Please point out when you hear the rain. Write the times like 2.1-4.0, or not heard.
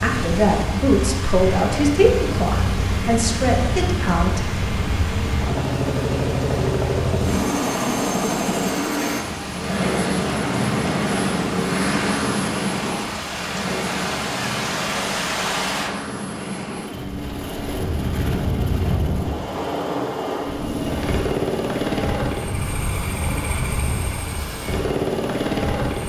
0.0-15.9.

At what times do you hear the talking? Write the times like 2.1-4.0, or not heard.
0.0-4.5.